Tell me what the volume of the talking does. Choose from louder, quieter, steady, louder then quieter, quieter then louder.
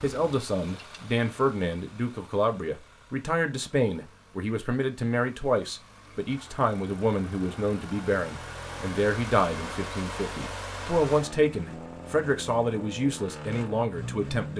steady.